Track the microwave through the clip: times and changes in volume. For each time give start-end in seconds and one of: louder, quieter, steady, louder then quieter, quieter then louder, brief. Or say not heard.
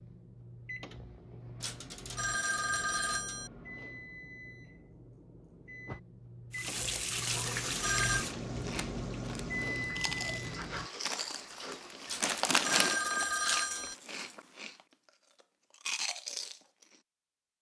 0.0-10.9 louder.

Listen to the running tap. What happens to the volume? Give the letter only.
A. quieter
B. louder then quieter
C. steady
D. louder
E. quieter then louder
E.